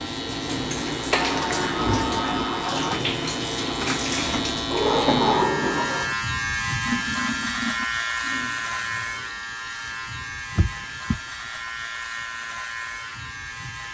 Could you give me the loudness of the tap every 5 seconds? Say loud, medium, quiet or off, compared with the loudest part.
loud, medium, quiet.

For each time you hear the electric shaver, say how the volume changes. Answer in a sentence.
You can hear the electric shaver from 0.0 to 13.8 s, getting louder then quieter.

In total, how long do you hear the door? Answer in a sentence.
The door can be heard for 4 seconds in total.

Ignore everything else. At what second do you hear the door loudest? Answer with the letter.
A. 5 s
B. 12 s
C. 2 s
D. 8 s
A.